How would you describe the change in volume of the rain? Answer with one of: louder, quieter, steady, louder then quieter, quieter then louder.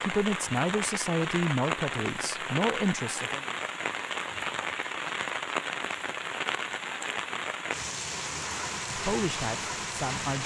steady.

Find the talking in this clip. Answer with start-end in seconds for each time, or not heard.
0.0-3.5, 8.9-10.4.